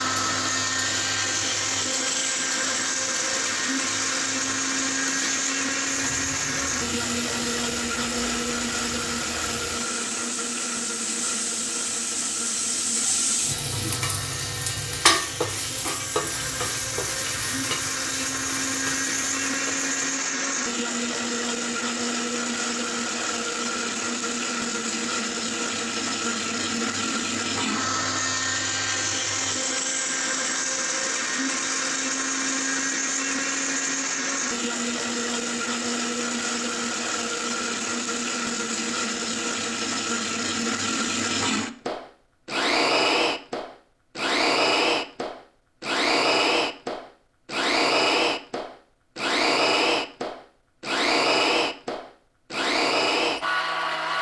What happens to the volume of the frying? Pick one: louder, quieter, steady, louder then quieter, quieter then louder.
louder then quieter.